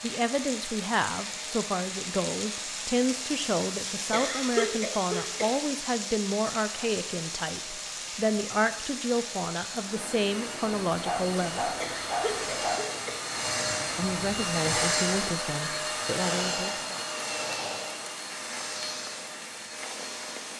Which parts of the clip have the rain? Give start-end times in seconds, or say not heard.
0.0-20.5.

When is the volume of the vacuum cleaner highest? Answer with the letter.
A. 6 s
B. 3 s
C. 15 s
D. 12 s
C.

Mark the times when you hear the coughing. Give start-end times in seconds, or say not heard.
4.1-5.5, 11.8-13.2.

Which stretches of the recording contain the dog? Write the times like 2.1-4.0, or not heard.
10.9-12.8.